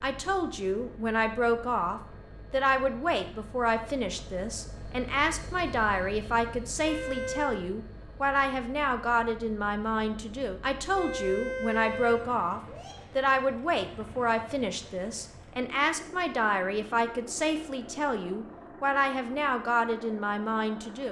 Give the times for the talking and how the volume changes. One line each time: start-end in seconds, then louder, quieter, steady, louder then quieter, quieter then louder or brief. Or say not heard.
0.0-21.0 steady.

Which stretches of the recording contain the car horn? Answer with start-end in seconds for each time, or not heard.
6.8-7.7, 10.9-12.9.